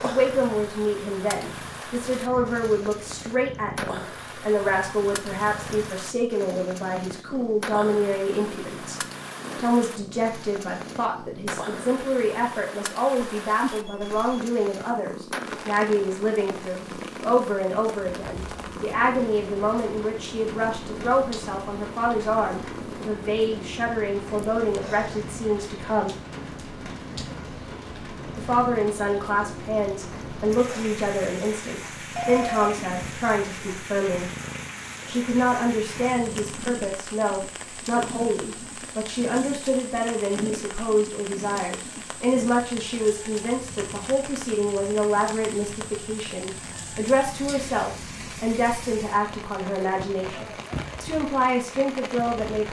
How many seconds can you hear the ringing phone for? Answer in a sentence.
The ringing phone can be heard for 2 seconds in total.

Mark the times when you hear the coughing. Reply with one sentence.
You can't hear the coughing here.